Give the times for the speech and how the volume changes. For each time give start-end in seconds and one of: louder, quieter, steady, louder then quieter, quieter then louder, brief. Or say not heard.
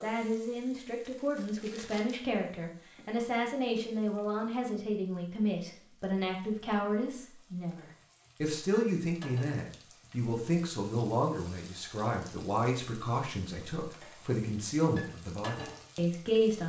0.0-16.6 steady.